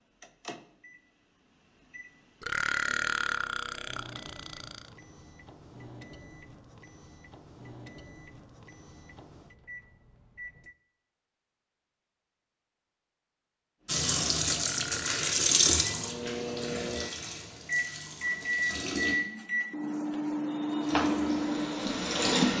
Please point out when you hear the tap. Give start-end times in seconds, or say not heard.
13.8-19.1, 20.8-22.5.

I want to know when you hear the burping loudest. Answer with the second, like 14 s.
3 s.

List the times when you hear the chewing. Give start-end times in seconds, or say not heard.
not heard.